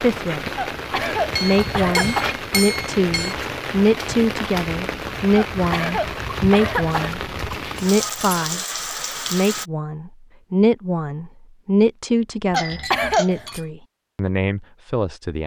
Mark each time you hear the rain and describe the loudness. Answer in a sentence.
You can hear the rain from 0.0 to 9.7 s, at a steady volume.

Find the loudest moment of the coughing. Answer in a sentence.
The loudest moment of the coughing is at 13 seconds.